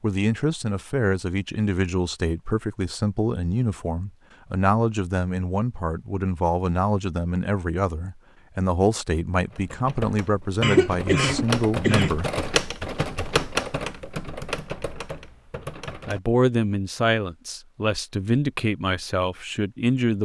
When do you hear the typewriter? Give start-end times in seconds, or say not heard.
9.5-16.2.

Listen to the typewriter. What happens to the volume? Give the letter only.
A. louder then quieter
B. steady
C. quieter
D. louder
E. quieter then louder
A.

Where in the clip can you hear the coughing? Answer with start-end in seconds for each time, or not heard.
10.6-12.2.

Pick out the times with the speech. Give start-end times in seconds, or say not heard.
0.0-12.4, 16.1-20.2.